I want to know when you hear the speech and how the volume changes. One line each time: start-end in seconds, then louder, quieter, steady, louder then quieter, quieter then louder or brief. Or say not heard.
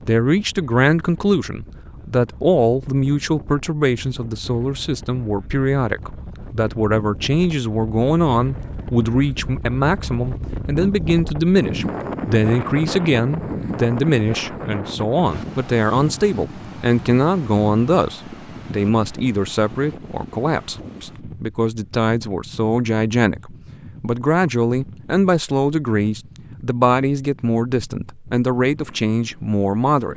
0.1-30.1 steady.